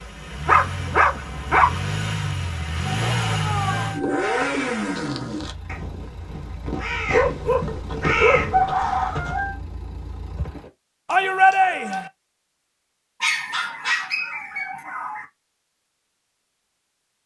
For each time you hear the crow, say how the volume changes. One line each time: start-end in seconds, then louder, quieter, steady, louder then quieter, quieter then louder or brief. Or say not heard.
3.0-9.6 quieter then louder.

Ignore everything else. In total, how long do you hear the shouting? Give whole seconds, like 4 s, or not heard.
2 s.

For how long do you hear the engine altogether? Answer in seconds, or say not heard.
11 s.